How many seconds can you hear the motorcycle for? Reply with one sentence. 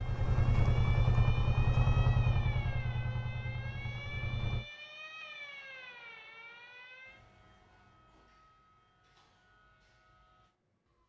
You can hear the motorcycle for 5 seconds altogether.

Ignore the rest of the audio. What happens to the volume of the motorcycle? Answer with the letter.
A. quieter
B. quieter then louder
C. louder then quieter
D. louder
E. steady
A.